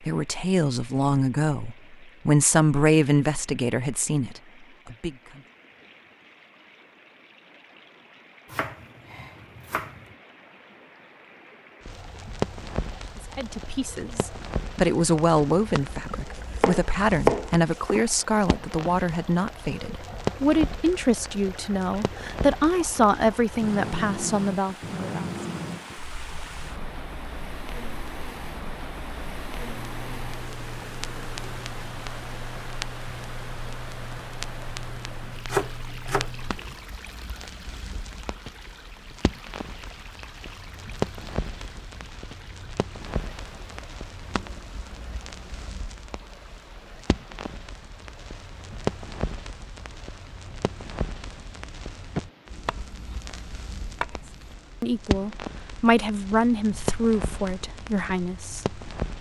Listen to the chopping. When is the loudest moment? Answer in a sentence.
The loudest moment of the chopping is at 17 seconds.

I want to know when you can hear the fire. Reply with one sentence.
The fire can be heard from 11.8 to 59.1 s.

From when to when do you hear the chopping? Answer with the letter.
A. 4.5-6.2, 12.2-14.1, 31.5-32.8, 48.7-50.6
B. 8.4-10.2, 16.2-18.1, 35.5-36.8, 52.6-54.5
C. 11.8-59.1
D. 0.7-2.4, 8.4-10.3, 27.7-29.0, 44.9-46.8
B.